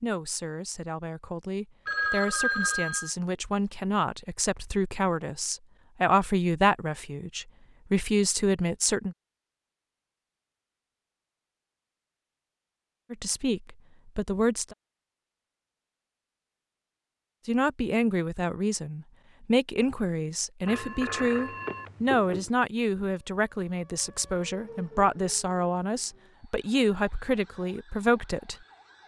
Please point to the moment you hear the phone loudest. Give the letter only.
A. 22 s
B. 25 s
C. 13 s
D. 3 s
D.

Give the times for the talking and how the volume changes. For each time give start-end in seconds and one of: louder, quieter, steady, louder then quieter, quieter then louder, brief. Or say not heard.
0.0-9.2 louder
13.1-14.8 brief
17.4-29.0 steady.